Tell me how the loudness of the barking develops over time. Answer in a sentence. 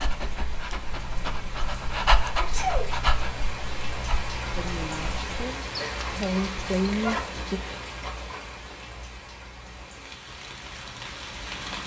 The loudness of the barking goes up, then down.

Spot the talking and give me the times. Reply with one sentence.
The talking can be heard from 4.5 to 7.6 s.